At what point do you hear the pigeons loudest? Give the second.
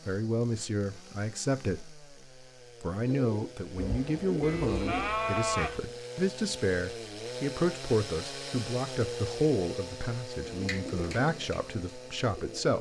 5 s.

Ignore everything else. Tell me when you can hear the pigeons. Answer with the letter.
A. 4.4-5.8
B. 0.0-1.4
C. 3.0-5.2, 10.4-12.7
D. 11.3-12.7
C.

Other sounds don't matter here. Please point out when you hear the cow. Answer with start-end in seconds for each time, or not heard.
4.4-5.8.